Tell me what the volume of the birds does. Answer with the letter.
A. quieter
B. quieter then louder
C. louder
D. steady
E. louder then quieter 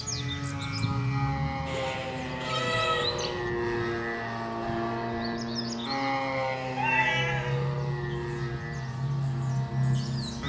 B.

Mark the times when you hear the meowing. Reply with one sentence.
The meowing can be heard from 1.6 to 3.4 s and from 6.8 to 7.6 s.